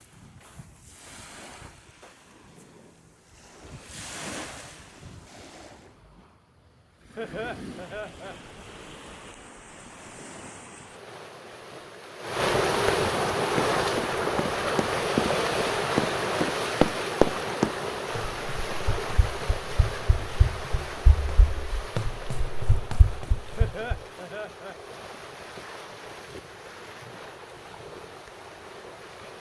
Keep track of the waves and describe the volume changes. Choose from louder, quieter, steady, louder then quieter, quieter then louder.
louder then quieter.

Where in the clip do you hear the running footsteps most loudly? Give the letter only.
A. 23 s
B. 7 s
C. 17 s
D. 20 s
C.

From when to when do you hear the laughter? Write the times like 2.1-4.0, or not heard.
7.2-8.3, 23.6-24.8.